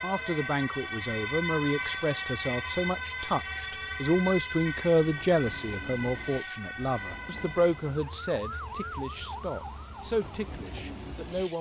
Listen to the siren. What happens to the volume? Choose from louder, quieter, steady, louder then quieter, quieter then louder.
quieter.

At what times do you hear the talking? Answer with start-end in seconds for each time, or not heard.
0.0-11.5.